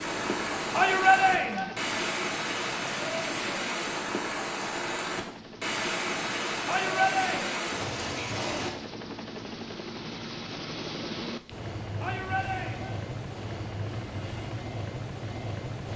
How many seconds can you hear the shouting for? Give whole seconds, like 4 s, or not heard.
3 s.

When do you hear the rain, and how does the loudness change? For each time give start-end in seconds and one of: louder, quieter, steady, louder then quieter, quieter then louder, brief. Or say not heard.
0.0-8.7 steady.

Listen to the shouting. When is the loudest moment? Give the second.
1 s.